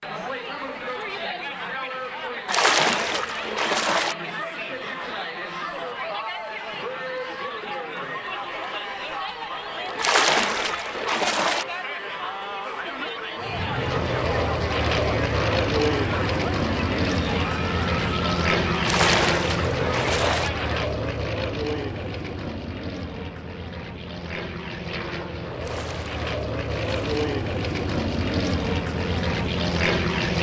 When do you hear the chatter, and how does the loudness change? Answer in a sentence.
You can hear the chatter from 0.0 to 20.8 s, at a steady volume.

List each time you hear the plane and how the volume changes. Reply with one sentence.
The plane can be heard from 13.4 to 30.3 s, getting quieter then louder.